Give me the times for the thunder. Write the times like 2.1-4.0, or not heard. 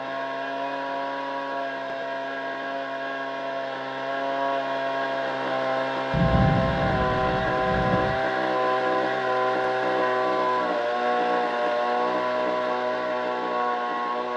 6.1-8.2.